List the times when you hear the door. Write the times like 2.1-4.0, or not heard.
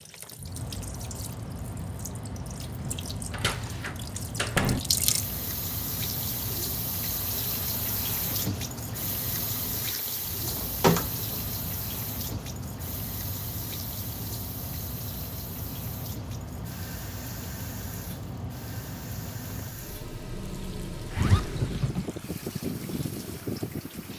2.9-4.8, 9.8-11.4, 21.1-22.1.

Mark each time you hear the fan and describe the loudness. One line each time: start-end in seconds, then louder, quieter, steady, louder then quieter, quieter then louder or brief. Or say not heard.
0.0-24.1 steady.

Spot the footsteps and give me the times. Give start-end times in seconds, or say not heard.
not heard.